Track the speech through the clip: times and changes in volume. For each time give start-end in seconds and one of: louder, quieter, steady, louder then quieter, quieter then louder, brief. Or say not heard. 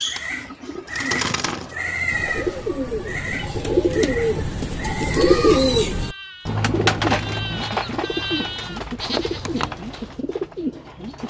not heard.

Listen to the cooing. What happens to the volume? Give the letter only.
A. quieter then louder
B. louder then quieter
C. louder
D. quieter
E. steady
B.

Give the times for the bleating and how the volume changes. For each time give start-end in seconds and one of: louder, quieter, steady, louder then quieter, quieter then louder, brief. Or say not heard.
0.0-10.2 quieter then louder.